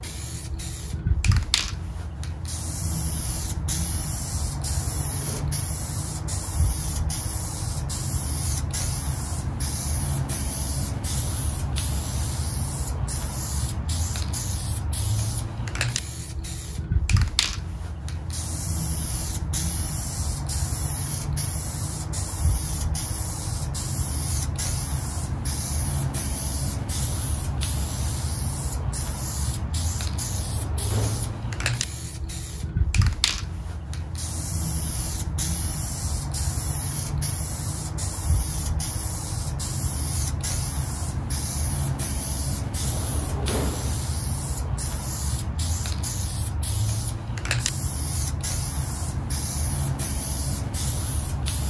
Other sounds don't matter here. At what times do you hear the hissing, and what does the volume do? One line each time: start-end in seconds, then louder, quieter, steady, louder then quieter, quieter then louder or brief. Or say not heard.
0.0-51.6 steady.